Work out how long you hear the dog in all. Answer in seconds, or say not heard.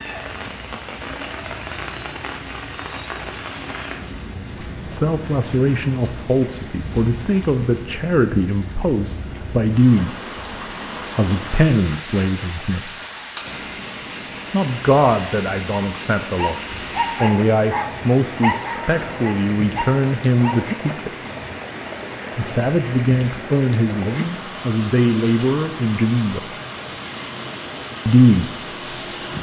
5 s.